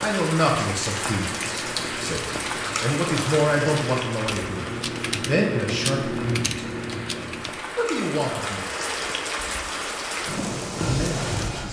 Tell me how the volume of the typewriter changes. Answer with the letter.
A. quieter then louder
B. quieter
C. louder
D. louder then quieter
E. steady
C.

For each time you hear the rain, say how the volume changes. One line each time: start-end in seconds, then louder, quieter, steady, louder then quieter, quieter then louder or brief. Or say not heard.
0.0-11.6 quieter then louder.